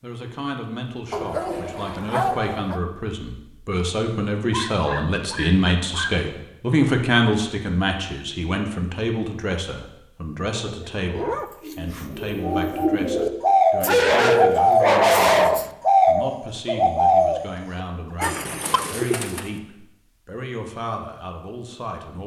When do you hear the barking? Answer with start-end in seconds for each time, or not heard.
1.1-2.8, 4.5-6.3, 10.5-11.4, 13.8-15.7, 18.1-18.9.